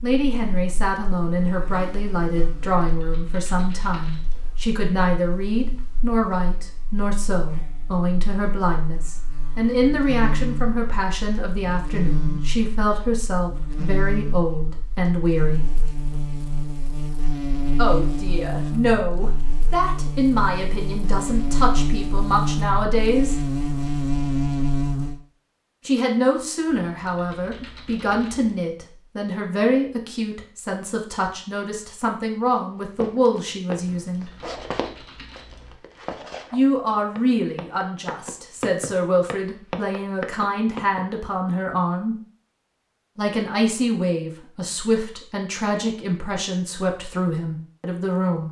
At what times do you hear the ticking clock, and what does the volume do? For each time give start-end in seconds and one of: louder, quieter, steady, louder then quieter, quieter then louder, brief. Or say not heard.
not heard.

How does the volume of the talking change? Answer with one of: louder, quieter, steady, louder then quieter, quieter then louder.
steady.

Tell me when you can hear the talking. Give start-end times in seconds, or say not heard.
0.0-15.7, 17.8-23.4, 25.9-34.3, 36.5-42.1, 43.1-48.4.